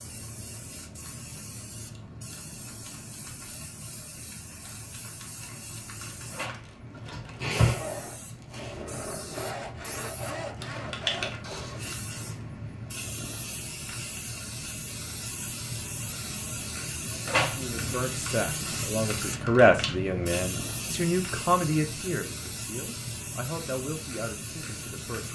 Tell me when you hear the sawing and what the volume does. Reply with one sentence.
The sawing can be heard from 6.9 to 11.3 s, getting quieter then louder.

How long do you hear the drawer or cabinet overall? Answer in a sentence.
You can hear the drawer or cabinet for 2 seconds altogether.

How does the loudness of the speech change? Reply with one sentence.
The volume of the speech goes up, then down.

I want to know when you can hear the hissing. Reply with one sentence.
The hissing can be heard from 0.0 to 25.3 s.